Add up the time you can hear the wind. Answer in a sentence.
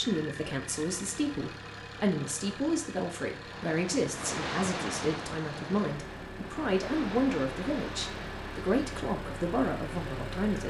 You can hear the wind for 7 seconds altogether.